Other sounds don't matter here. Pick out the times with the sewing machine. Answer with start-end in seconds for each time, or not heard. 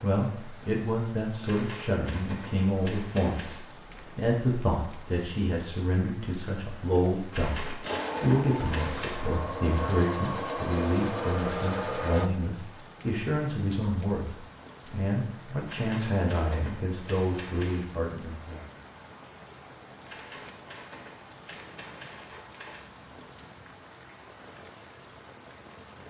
7.7-12.3.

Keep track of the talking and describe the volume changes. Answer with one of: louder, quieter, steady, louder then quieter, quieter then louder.
steady.